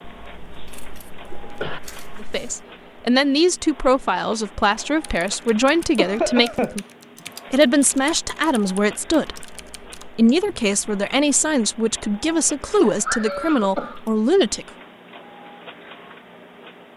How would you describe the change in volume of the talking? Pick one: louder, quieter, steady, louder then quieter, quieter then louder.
steady.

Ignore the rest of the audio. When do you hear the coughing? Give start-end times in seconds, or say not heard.
0.4-1.8, 6.0-6.8, 12.8-14.0.